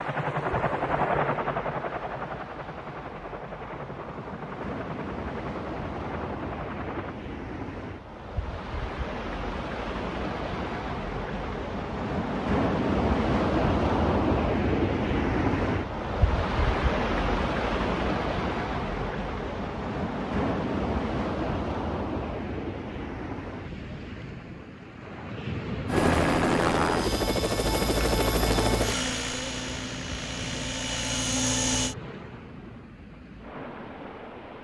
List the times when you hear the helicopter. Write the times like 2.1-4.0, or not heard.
0.0-7.2, 25.9-31.9.